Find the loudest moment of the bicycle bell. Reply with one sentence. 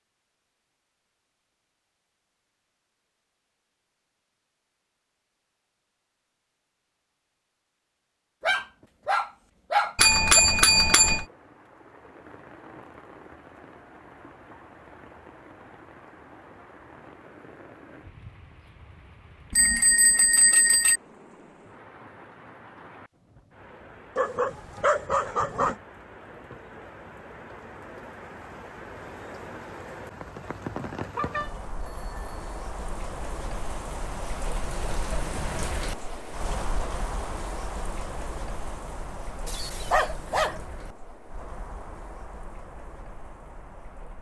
The loudest moment of the bicycle bell is at 10 seconds.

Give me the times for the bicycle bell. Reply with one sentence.
The bicycle bell can be heard from 9.9 to 11.2 s, from 19.5 to 21.0 s and from 31.1 to 32.4 s.